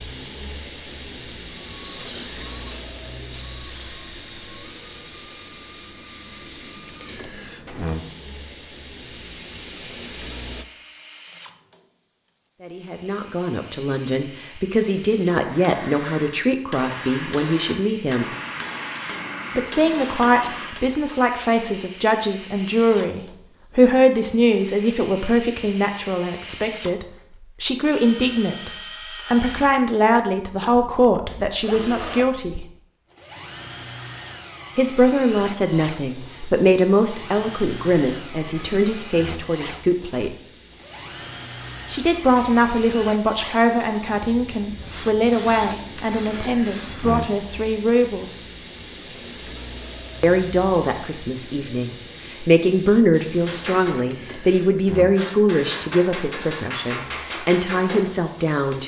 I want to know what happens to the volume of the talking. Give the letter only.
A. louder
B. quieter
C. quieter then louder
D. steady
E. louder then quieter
D.